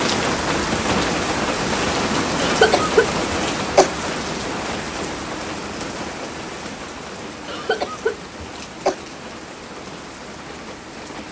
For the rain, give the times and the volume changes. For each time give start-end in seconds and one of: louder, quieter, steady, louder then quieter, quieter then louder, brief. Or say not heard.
0.0-11.2 quieter.